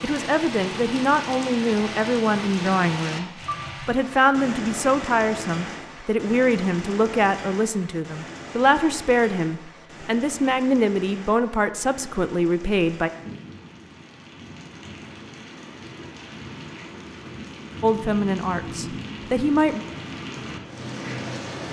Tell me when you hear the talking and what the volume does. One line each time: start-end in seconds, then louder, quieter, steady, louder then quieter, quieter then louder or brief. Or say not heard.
0.0-13.1 steady
17.8-19.8 brief.